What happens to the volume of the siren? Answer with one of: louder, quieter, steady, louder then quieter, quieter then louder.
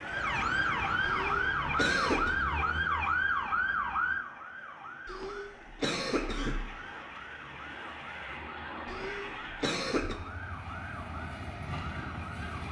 quieter.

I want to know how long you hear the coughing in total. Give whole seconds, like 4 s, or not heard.
4 s.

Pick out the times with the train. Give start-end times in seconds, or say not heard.
0.0-12.6.